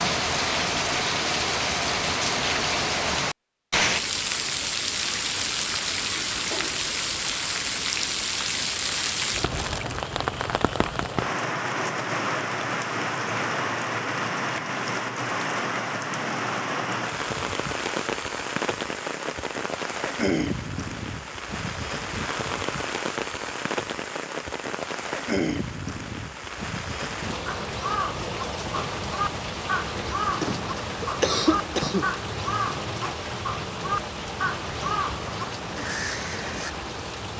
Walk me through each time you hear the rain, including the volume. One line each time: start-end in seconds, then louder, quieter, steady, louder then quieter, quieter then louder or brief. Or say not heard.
0.0-37.3 quieter.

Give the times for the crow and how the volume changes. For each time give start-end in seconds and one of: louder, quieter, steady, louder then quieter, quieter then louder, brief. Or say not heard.
27.4-36.7 steady.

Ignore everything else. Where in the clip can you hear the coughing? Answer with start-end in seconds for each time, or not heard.
30.2-32.0.